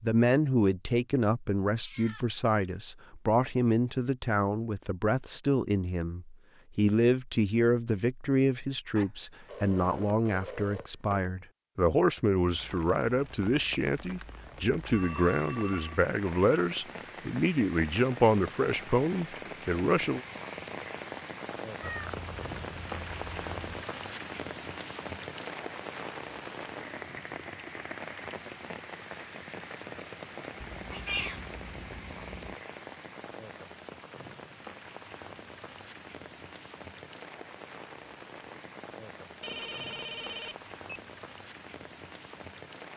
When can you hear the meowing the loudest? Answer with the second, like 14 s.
31 s.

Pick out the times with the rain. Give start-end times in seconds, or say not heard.
12.4-42.9.